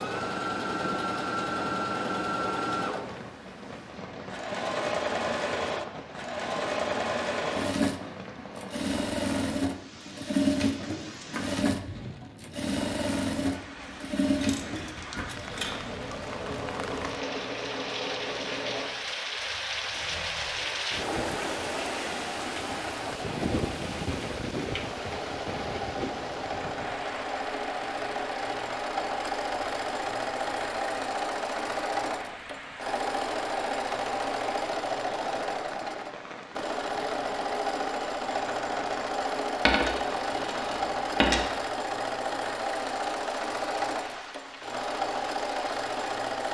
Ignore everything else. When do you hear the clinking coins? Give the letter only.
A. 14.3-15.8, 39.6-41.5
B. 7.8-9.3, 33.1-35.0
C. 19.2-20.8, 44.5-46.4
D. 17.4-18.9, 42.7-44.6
A.